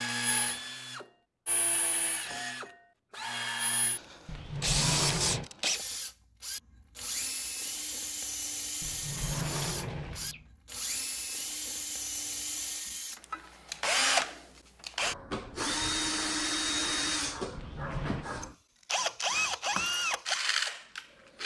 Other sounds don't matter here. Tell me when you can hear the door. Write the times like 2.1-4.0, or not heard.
4.2-5.5, 8.8-10.4, 17.5-18.3.